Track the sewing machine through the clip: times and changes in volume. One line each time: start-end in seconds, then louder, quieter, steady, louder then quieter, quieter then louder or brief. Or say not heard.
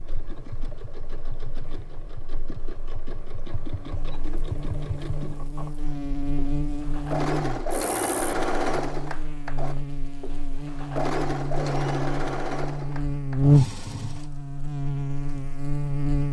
0.0-16.2 louder then quieter.